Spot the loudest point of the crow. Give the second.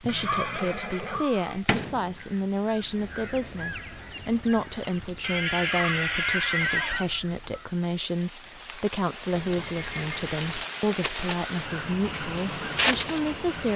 13 s.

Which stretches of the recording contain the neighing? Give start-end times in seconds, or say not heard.
0.1-1.6, 5.2-7.1, 9.3-10.7.